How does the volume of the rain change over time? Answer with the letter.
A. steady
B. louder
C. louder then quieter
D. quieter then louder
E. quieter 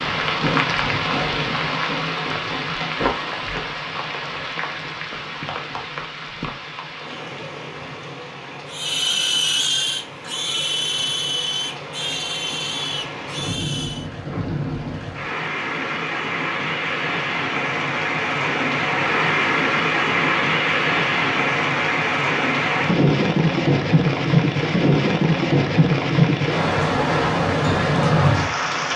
D.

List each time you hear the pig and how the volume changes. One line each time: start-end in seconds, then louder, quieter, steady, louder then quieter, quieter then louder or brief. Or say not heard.
8.7-14.1 quieter.